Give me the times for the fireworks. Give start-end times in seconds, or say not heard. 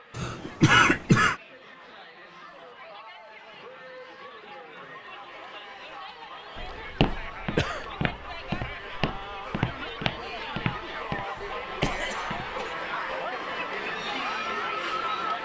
not heard.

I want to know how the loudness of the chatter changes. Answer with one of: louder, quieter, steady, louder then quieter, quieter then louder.
louder.